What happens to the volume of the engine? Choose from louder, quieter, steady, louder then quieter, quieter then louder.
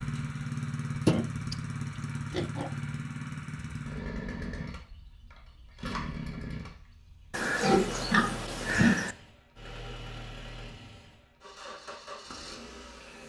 quieter.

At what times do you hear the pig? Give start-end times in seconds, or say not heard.
1.1-1.6, 2.3-2.7, 7.3-9.2.